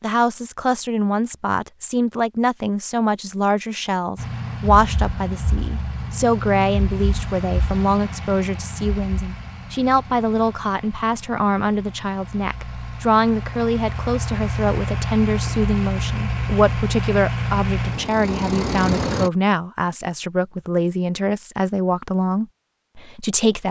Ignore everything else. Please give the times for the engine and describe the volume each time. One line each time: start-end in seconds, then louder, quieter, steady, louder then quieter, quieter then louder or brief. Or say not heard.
4.2-19.3 quieter then louder.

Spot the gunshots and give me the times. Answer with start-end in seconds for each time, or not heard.
not heard.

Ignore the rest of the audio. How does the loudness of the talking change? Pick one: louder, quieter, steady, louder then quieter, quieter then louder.
steady.